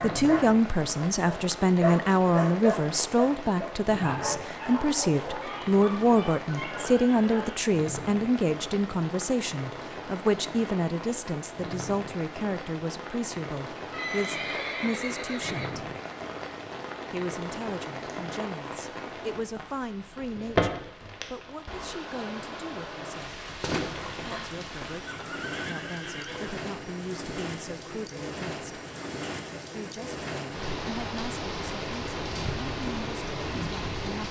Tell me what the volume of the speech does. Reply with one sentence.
The volume of the speech goes down.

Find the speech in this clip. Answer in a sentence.
The speech can be heard from 0.0 to 15.8 s, from 17.1 to 23.4 s, from 24.2 to 28.6 s and from 29.7 to 34.2 s.